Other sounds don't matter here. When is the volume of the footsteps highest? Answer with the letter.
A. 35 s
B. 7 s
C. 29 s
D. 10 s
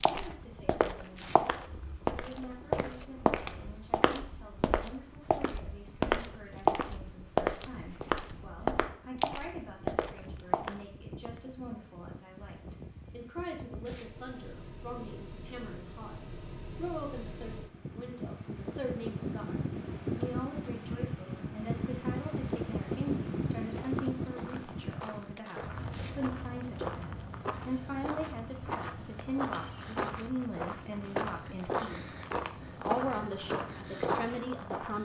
B.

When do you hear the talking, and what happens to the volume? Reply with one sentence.
You can hear the talking from 0.1 to 35.0 s, getting louder.